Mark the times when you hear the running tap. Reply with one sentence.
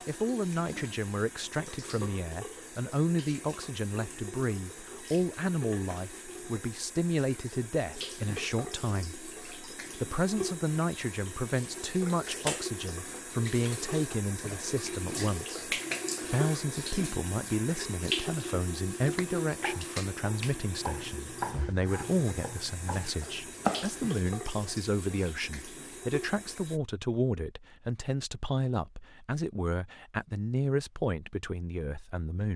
You can hear the running tap from 0.0 to 26.8 s.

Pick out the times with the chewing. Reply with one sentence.
You can't hear the chewing here.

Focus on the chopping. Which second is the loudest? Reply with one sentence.
The loudest moment of the chopping is at 24 seconds.